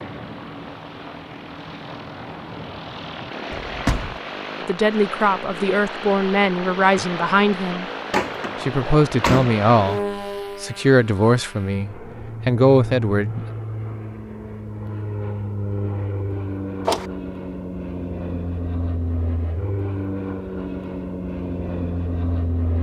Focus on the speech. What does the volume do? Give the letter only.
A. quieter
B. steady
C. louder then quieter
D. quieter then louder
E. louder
B.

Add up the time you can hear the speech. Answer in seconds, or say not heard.
8 s.